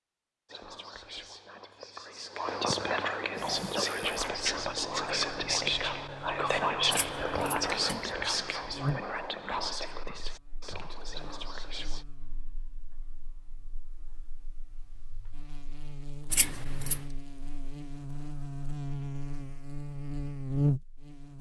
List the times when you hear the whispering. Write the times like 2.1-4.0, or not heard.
0.5-12.1.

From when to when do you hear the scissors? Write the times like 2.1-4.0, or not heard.
6.9-8.2, 16.3-17.0.